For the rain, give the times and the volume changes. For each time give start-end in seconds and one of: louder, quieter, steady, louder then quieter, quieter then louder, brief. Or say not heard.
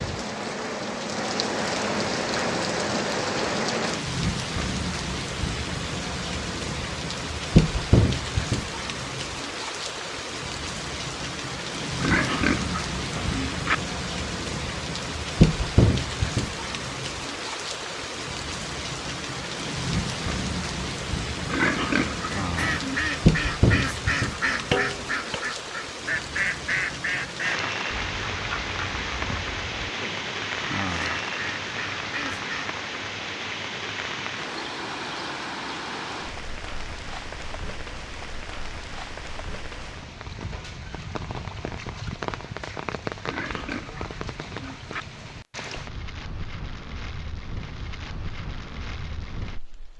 0.0-49.9 quieter.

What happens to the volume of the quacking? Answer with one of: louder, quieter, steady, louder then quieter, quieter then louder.
quieter then louder.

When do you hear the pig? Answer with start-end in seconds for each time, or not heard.
12.0-13.8, 21.4-23.0, 43.2-45.0.